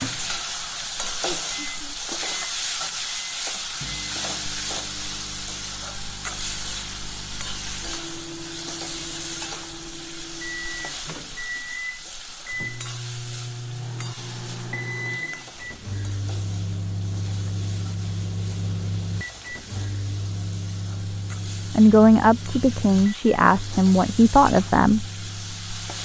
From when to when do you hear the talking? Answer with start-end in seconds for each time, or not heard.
21.7-25.1.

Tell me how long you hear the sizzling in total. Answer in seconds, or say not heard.
26 s.